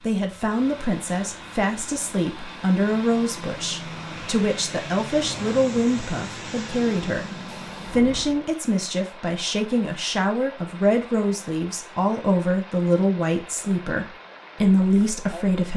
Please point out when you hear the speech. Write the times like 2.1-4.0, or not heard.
0.0-15.7.